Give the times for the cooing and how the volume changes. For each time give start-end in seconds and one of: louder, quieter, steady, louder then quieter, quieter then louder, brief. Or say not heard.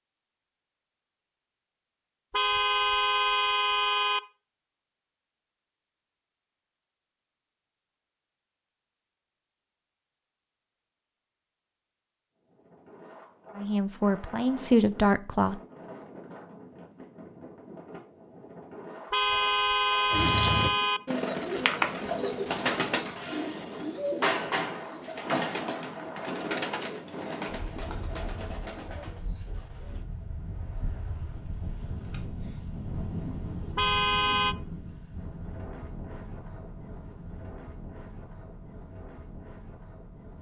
20.1-30.1 quieter.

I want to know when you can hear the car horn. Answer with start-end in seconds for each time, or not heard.
2.3-4.2, 19.1-21.0, 33.8-34.5.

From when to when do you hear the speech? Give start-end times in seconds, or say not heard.
13.6-15.6.